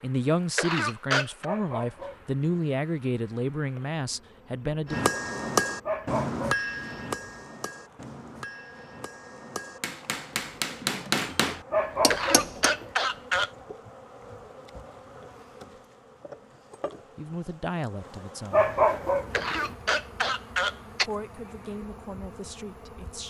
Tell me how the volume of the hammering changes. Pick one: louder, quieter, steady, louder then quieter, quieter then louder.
quieter then louder.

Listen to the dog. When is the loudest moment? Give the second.
19 s.